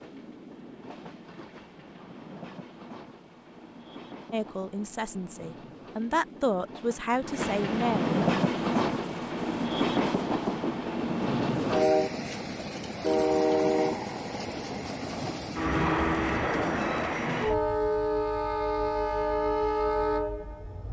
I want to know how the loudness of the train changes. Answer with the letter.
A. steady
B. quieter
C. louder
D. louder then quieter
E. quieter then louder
C.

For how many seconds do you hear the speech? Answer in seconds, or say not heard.
4 s.